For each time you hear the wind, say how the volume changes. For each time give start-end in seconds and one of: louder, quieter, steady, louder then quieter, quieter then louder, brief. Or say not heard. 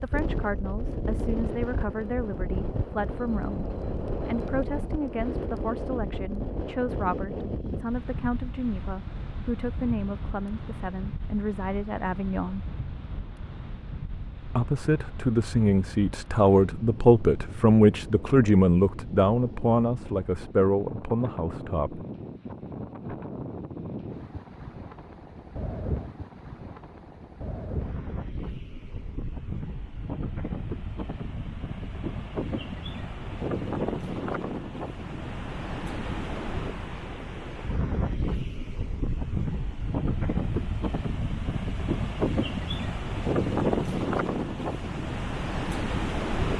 0.0-46.5 quieter then louder.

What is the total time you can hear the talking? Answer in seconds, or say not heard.
20 s.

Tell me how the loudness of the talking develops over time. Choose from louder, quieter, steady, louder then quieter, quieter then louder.
louder.